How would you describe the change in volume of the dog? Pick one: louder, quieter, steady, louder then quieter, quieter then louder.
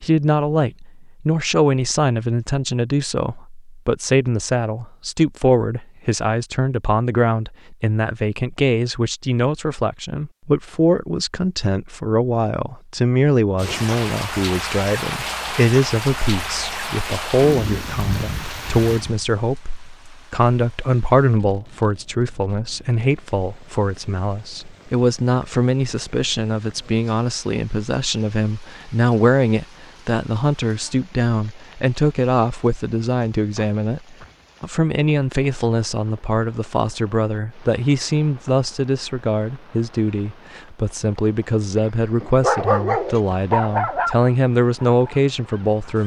quieter.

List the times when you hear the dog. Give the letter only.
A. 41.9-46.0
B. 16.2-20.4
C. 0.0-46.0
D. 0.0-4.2
A.